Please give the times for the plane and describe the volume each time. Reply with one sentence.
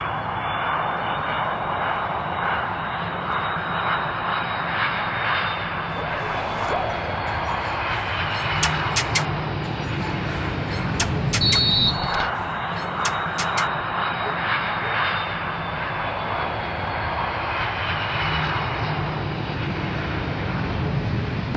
You can hear the plane from 0.0 to 21.5 s, at a steady volume.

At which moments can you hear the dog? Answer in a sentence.
The dog can be heard from 5.9 to 14.9 s.